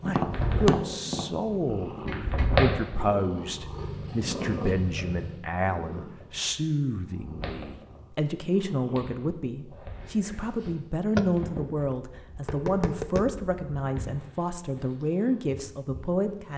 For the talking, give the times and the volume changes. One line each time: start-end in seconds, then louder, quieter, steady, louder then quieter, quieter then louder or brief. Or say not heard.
0.0-16.5 steady.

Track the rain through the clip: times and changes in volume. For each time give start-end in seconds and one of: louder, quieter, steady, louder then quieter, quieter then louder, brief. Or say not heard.
not heard.